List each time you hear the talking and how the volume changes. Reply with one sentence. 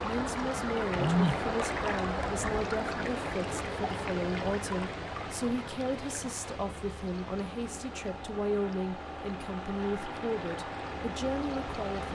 The talking can be heard from 0.0 to 12.0 s, at a steady volume.